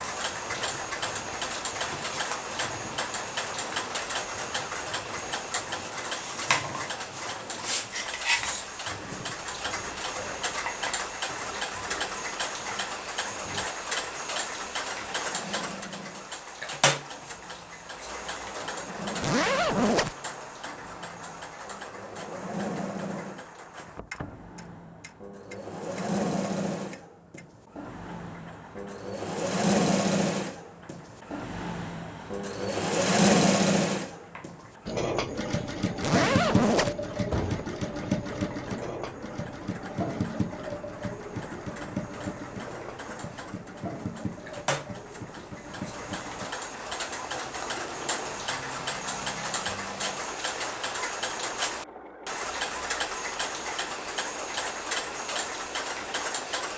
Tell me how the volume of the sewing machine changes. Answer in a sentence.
The loudness of the sewing machine goes up, then down.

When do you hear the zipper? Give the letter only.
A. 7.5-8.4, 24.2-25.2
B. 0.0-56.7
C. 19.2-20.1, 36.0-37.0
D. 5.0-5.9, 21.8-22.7
C.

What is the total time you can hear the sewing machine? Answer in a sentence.
The sewing machine can be heard for 57 seconds in total.